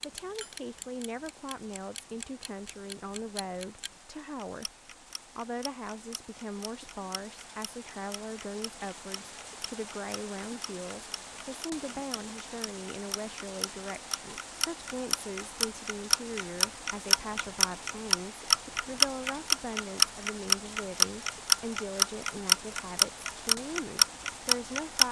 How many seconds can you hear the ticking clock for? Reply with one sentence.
The ticking clock can be heard for 25 seconds in total.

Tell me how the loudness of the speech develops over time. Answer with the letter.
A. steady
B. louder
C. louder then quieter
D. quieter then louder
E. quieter
A.